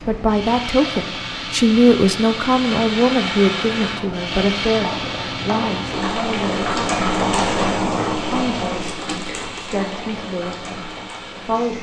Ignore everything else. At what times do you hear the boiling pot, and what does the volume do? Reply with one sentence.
You can hear the boiling pot from 0.0 to 11.7 s, getting louder then quieter.